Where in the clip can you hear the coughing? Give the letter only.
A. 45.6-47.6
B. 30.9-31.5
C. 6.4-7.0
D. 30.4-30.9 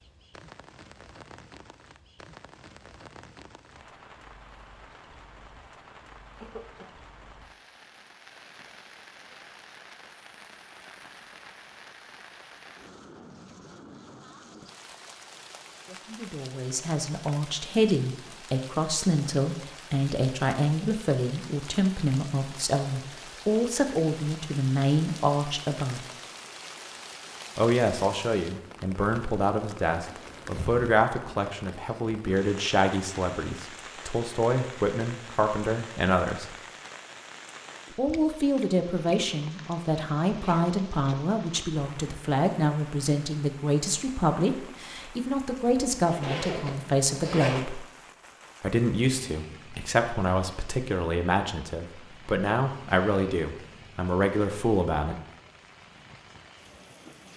C.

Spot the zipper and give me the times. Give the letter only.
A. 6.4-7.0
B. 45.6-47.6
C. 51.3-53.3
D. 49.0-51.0
B.